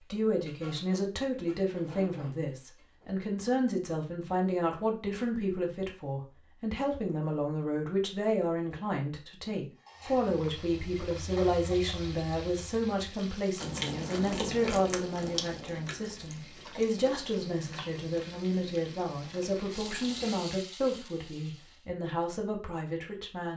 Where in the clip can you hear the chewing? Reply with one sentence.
You can hear the chewing from 13.6 to 20.4 s.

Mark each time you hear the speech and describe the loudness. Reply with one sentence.
The speech can be heard from 0.0 to 23.5 s, at a steady volume.